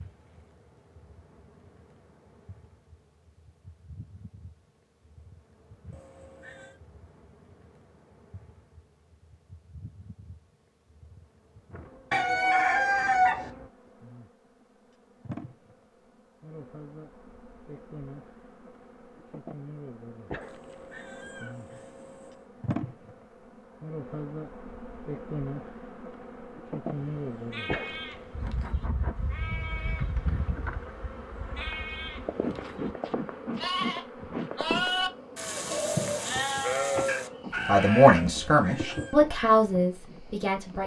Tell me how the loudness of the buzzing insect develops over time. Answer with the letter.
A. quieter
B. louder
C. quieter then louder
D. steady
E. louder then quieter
B.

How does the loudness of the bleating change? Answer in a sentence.
The loudness of the bleating goes up.